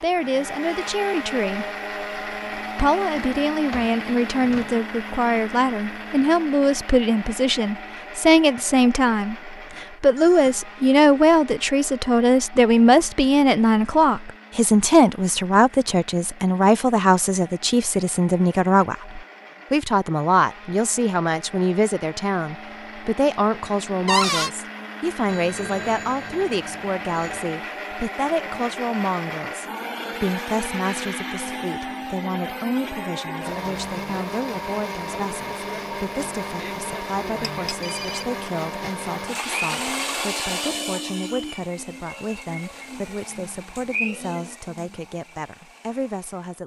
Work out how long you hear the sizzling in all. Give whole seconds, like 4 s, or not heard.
not heard.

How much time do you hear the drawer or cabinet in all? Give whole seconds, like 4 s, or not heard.
3 s.